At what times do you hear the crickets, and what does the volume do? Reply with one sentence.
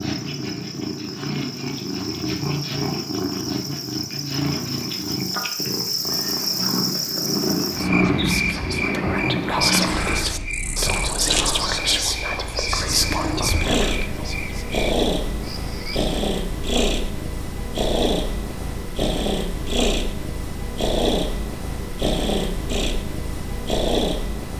You can hear the crickets from 0.0 to 16.1 s, getting louder then quieter.